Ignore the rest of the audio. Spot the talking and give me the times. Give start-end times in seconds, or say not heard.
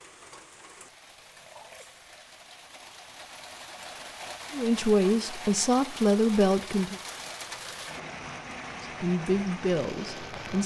4.5-7.0, 8.8-10.6.